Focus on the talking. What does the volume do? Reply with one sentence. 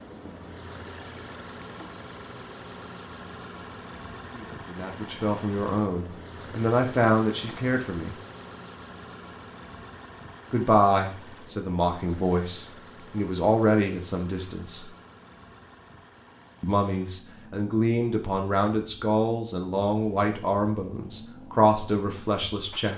The loudness of the talking stays about the same.